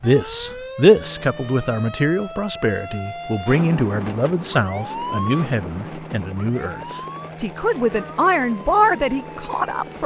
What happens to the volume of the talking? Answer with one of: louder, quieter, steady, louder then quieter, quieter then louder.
quieter then louder.